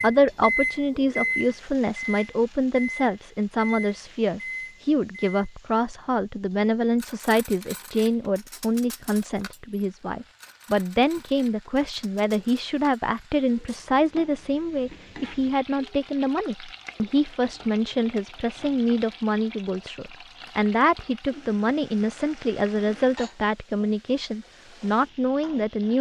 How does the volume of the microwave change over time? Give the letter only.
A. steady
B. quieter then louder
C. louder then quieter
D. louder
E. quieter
E.